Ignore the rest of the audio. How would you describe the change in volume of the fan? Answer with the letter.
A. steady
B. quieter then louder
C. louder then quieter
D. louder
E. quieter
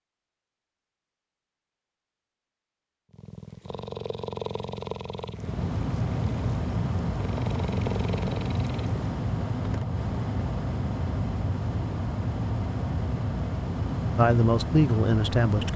A.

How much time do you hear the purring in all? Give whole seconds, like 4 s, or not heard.
6 s.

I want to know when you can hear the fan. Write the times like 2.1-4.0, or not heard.
5.3-15.7.